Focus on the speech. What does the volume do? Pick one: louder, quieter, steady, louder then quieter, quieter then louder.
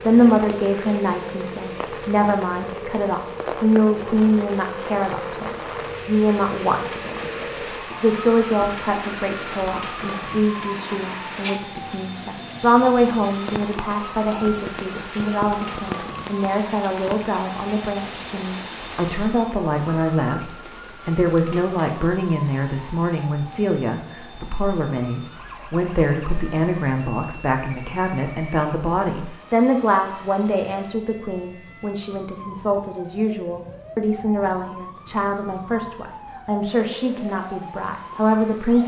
steady.